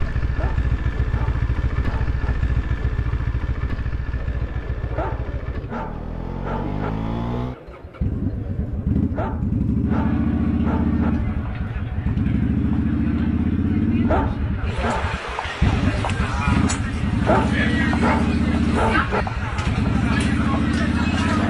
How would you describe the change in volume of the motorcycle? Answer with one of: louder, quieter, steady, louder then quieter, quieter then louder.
louder.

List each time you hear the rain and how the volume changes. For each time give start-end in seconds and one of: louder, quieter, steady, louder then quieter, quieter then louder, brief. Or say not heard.
not heard.